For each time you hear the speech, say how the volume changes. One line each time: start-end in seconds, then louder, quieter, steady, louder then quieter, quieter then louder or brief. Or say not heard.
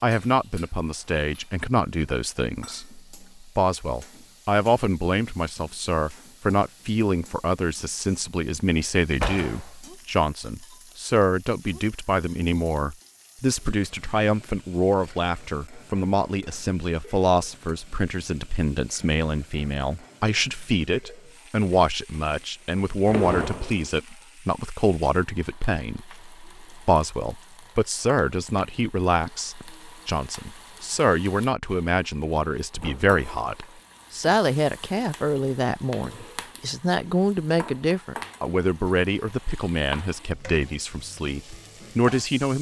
0.0-42.5 steady.